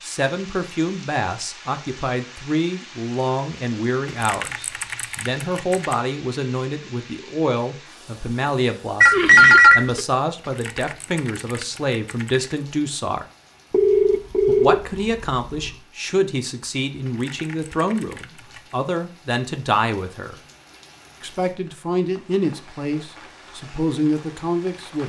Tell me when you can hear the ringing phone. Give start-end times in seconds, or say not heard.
9.0-10.0, 13.7-15.8.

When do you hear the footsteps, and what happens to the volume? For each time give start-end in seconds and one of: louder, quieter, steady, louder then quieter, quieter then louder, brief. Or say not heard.
not heard.